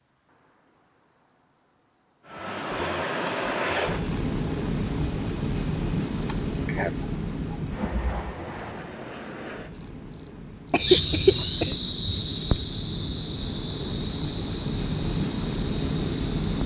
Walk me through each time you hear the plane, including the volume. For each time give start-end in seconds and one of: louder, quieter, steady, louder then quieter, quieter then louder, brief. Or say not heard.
2.2-16.6 quieter then louder.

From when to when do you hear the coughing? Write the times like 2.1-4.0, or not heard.
10.7-11.8.